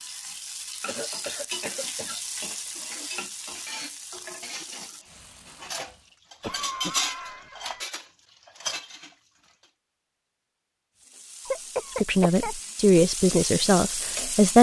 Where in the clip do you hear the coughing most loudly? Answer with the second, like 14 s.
12 s.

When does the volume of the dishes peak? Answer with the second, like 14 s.
7 s.